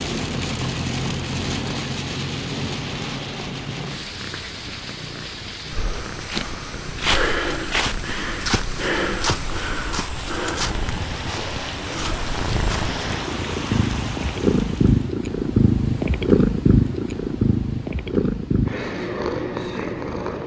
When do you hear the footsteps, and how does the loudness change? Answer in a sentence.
You can hear the footsteps from 5.7 to 12.9 s, getting quieter.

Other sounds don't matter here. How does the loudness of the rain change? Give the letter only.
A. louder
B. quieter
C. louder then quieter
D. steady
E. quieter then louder
E.